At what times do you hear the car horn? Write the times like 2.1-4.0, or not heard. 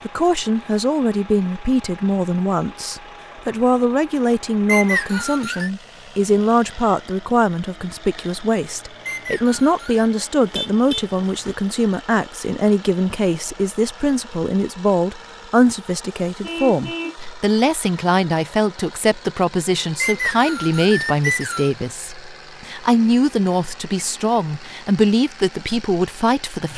10.4-11.6, 16.4-17.1.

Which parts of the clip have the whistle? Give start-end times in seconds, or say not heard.
4.7-5.7, 9.1-10.1, 20.0-21.7.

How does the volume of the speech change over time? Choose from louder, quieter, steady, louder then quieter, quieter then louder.
steady.